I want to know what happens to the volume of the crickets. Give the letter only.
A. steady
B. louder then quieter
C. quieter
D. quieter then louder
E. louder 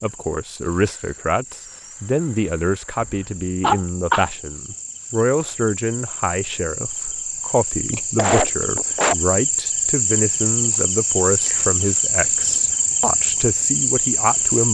E.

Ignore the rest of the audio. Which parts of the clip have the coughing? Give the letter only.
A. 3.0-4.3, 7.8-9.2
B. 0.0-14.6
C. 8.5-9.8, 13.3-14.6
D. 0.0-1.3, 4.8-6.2
A.